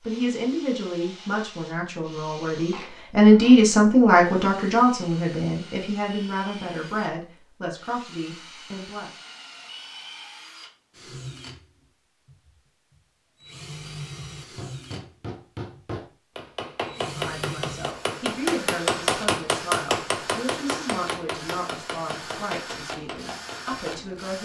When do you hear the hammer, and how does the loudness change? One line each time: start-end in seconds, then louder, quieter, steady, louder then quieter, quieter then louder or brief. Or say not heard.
14.6-24.1 louder then quieter.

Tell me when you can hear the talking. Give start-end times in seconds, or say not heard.
0.0-9.1, 16.9-24.3.